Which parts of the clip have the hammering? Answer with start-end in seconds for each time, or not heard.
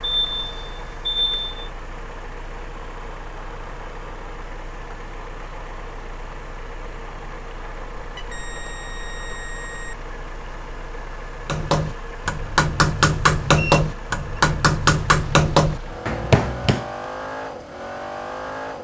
11.4-16.9.